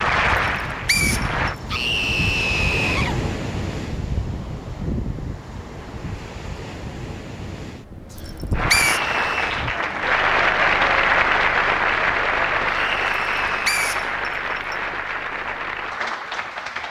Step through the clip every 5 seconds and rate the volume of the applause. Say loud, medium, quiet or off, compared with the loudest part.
loud, loud, loud, medium.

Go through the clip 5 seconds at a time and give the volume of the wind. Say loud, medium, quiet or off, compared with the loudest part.
loud, medium, off, off.